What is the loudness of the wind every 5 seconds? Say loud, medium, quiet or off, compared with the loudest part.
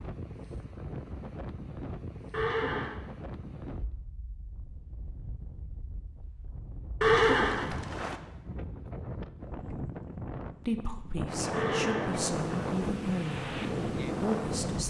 medium, medium, loud.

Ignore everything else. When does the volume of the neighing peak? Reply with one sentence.
The loudest moment of the neighing is at 7 seconds.